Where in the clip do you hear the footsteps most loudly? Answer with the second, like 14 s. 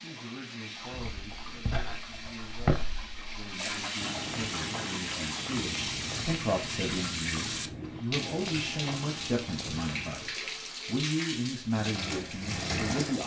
3 s.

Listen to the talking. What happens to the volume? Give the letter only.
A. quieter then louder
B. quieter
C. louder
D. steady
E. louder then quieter
C.